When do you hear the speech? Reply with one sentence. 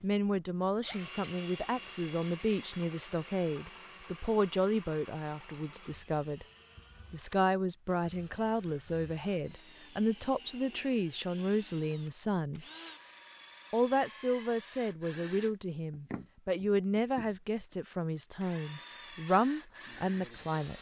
You can hear the speech from 0.0 to 6.5 s, from 7.1 to 12.7 s and from 13.7 to 20.7 s.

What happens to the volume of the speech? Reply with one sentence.
The loudness of the speech stays about the same.